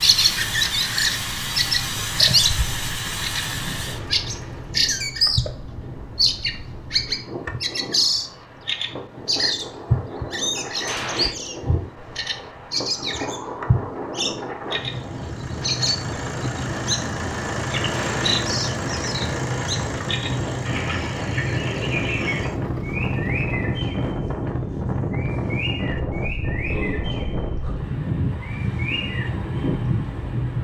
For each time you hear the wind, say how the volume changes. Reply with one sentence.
You can hear the wind from 0.0 to 30.5 s, getting louder.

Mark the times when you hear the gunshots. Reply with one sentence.
The gunshots can be heard from 10.8 to 11.3 s and from 17.9 to 18.4 s.